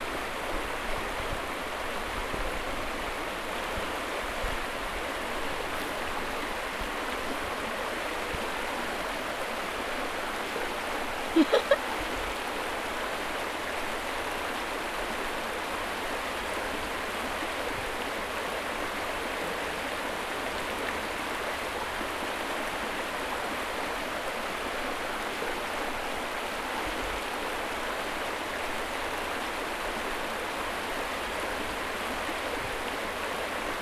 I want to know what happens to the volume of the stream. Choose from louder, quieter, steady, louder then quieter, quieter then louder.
steady.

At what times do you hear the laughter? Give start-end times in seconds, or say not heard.
11.3-11.8.